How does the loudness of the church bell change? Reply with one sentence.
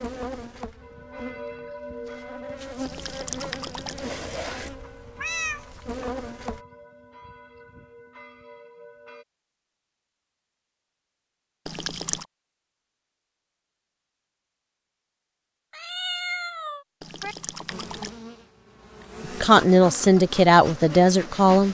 The loudness of the church bell goes down.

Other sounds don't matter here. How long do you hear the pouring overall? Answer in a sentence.
The pouring can be heard for 3 seconds in total.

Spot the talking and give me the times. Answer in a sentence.
You can hear the talking from 19.4 to 21.6 s.